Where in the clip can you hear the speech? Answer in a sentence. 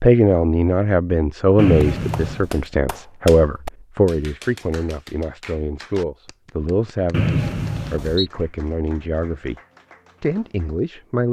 The speech can be heard from 0.0 to 9.6 s and from 10.2 to 11.2 s.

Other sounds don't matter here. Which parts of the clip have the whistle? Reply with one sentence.
The whistle can be heard from 1.6 to 2.5 s and from 7.1 to 8.3 s.